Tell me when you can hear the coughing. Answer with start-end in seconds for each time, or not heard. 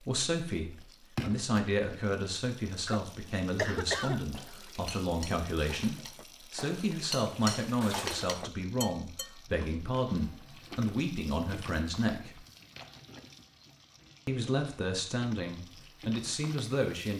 2.9-4.3.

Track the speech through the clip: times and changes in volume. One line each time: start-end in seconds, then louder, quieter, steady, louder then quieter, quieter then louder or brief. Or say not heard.
0.0-12.4 steady
14.2-17.1 brief.